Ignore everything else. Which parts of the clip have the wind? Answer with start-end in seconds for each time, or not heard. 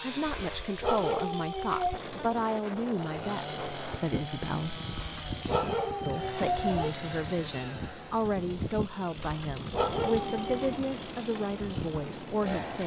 1.9-12.8.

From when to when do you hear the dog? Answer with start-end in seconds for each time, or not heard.
0.3-2.0, 5.0-7.0, 9.2-10.8.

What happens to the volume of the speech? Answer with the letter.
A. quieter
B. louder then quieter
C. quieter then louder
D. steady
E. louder
D.